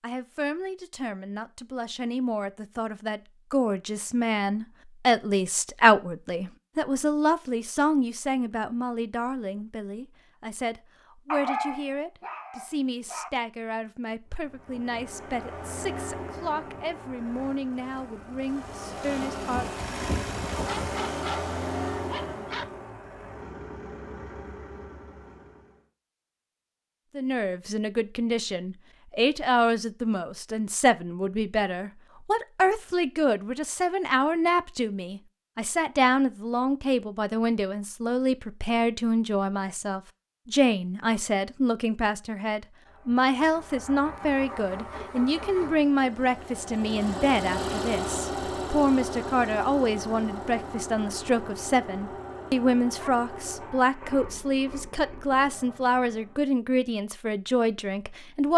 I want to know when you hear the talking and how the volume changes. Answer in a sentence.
The talking can be heard from 0.0 to 19.8 s, getting louder then quieter; and from 27.1 to 58.5 s, at a steady volume.